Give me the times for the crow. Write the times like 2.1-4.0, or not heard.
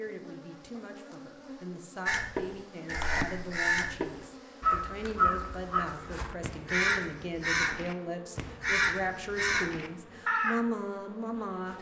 2.0-10.6.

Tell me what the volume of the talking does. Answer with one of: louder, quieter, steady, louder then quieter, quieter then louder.
louder.